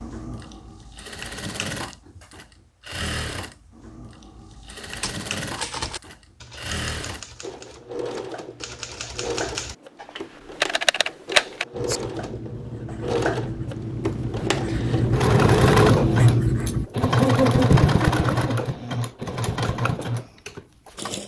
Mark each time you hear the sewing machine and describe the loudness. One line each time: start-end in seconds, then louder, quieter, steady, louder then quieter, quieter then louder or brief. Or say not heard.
0.0-21.2 louder.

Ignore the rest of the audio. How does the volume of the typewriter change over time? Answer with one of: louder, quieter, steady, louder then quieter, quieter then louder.
quieter then louder.